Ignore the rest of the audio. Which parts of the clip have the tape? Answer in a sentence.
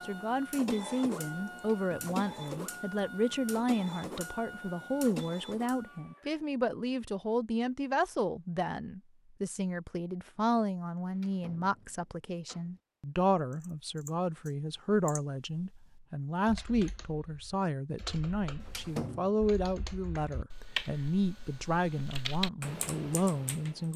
You can't hear the tape here.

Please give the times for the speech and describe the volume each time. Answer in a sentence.
You can hear the speech from 0.0 to 23.9 s, at a steady volume.